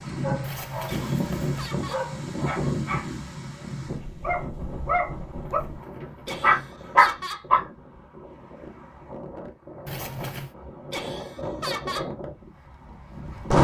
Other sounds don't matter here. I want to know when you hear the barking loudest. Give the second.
7 s.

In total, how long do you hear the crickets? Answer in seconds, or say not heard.
not heard.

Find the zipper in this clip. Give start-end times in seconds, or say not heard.
0.4-1.8, 5.5-7.0, 9.8-10.6.